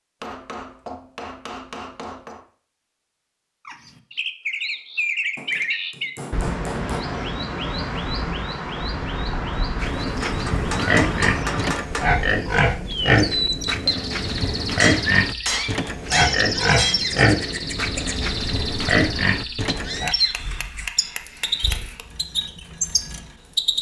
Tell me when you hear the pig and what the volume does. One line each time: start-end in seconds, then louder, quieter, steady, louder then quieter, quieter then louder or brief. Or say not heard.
9.8-20.1 steady.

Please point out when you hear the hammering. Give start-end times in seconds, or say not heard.
0.2-2.5, 5.3-7.0, 10.2-12.2, 14.8-17.0, 19.9-22.1.